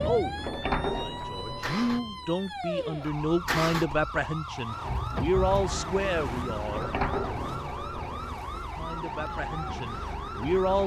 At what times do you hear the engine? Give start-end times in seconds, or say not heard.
0.0-10.8.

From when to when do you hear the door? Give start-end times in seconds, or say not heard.
0.3-2.0, 6.7-8.6.